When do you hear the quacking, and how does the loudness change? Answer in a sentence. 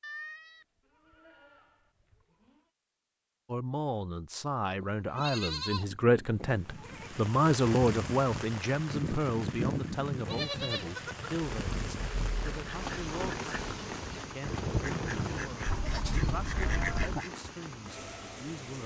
The quacking can be heard from 11.7 to 17.4 s, getting louder.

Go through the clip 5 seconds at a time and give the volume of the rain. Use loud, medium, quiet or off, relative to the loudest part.
off, loud, loud, medium.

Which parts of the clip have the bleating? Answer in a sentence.
The bleating can be heard from 0.0 to 2.6 s, from 4.8 to 7.2 s, from 10.2 to 11.4 s and from 15.7 to 17.2 s.